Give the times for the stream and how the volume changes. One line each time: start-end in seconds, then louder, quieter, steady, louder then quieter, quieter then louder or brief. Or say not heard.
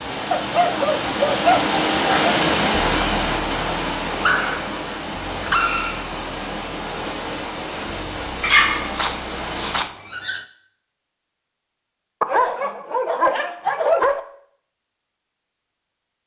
0.0-9.8 quieter.